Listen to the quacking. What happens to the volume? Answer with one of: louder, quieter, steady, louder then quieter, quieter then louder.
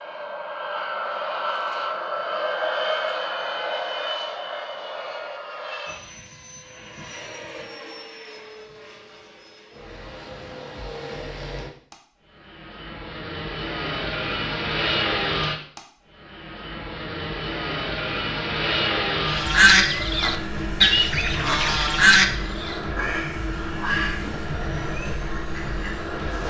quieter.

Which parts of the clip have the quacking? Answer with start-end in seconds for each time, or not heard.
19.3-26.4.